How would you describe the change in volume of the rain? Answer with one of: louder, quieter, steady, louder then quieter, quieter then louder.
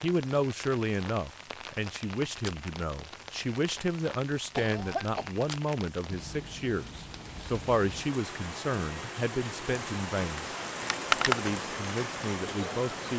louder.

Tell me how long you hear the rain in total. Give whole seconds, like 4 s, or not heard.
13 s.